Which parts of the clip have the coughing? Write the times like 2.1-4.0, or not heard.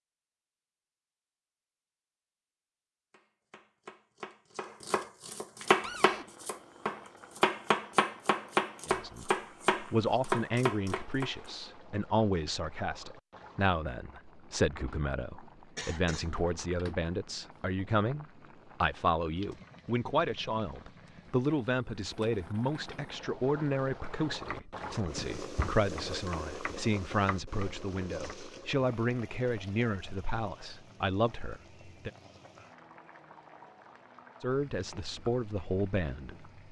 15.8-16.3.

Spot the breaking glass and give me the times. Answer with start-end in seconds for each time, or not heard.
not heard.